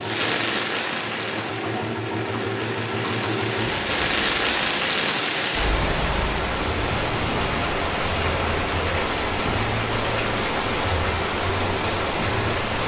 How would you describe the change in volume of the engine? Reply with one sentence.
The loudness of the engine goes up.